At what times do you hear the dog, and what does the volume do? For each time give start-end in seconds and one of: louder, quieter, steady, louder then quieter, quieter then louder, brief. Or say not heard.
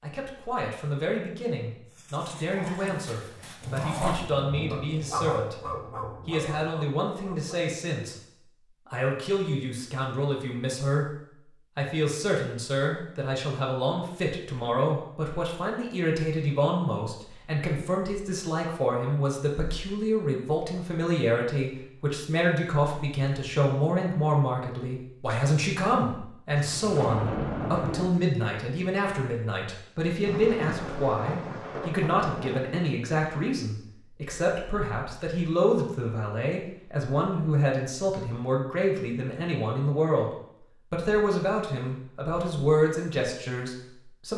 1.9-7.7 louder then quieter.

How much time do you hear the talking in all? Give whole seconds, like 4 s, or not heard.
43 s.